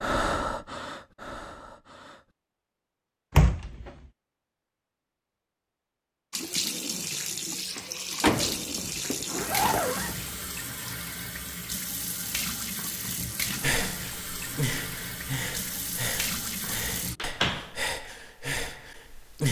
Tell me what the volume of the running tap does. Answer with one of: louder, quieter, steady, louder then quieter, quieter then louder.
steady.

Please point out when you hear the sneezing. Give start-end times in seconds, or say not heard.
not heard.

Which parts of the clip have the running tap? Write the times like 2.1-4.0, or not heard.
6.3-17.2.